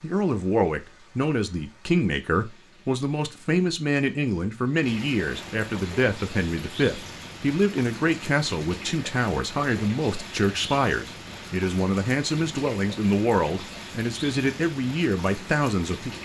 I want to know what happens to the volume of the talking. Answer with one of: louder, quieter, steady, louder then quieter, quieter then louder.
steady.